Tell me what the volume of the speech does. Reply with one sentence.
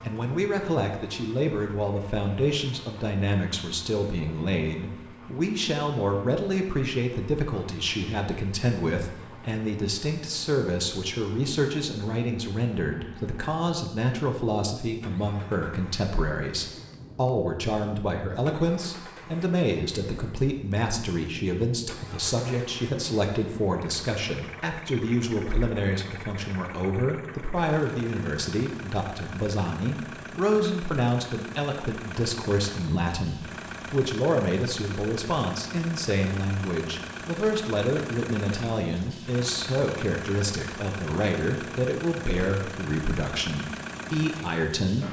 The loudness of the speech stays about the same.